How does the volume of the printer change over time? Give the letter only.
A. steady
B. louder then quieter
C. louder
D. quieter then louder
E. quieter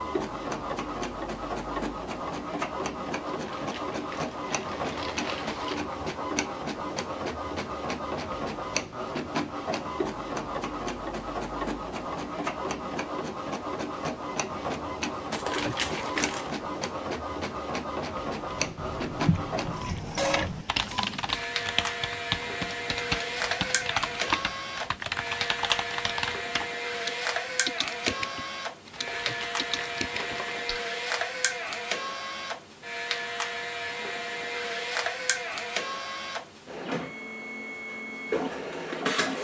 A.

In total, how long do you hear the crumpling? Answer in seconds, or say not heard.
6 s.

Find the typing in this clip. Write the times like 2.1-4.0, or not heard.
18.5-30.8.